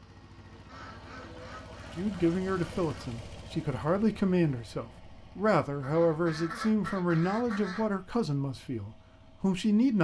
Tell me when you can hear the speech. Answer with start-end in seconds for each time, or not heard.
1.9-9.9.